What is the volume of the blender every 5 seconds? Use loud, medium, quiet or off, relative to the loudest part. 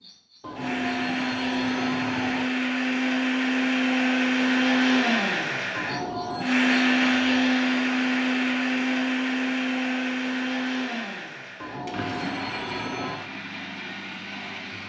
loud, loud, medium.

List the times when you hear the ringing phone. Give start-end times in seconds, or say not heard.
0.4-2.5, 5.8-6.5, 11.6-13.2.